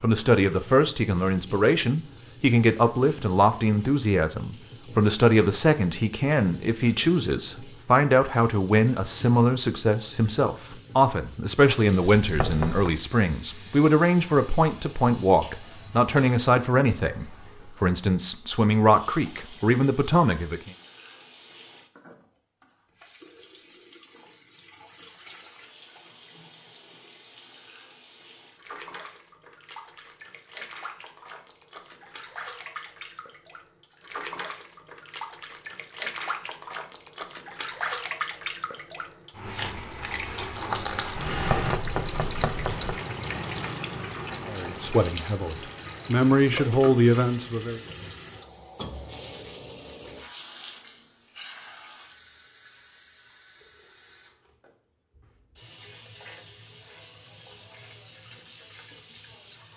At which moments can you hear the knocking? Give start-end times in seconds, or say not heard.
12.2-12.9, 41.3-43.0.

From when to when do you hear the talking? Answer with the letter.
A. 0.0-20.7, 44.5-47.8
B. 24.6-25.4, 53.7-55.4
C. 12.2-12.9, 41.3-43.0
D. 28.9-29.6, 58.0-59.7
A.